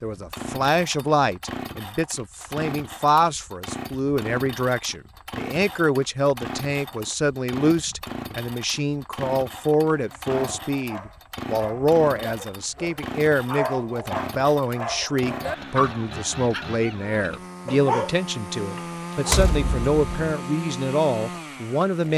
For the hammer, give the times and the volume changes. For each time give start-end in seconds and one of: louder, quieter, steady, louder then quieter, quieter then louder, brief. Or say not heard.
not heard.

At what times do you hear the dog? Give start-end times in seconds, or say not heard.
9.9-19.4.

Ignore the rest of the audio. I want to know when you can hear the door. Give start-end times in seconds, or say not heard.
19.2-20.4.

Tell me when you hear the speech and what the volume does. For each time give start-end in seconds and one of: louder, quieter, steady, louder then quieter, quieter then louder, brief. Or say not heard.
0.0-22.1 steady.